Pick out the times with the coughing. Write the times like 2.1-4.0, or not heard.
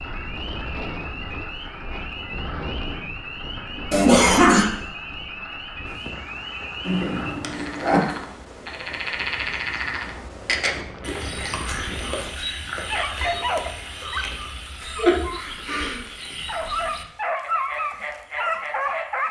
3.9-4.7, 6.8-8.2, 14.8-16.0.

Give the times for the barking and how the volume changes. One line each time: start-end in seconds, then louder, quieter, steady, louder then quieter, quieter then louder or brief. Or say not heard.
12.8-19.2 quieter then louder.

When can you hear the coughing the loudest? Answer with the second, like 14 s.
4 s.